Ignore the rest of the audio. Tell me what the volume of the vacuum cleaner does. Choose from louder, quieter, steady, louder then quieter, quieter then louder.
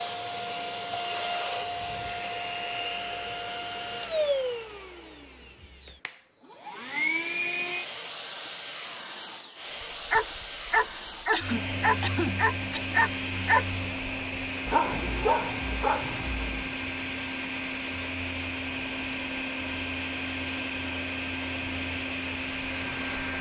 steady.